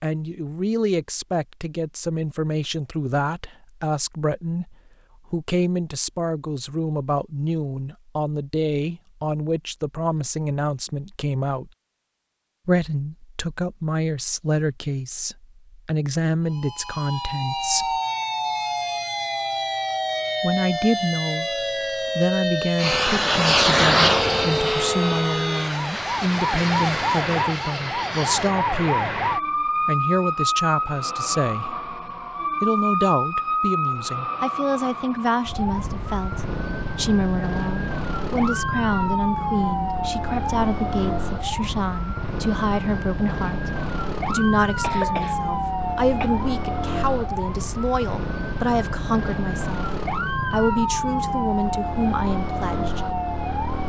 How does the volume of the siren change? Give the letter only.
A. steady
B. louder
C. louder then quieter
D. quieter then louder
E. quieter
A.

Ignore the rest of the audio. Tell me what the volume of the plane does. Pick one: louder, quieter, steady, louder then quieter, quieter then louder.
quieter.